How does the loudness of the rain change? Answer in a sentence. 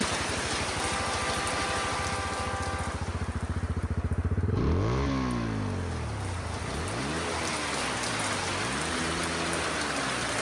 The loudness of the rain goes down, then up.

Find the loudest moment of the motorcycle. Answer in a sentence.
The loudest moment of the motorcycle is at 5 seconds.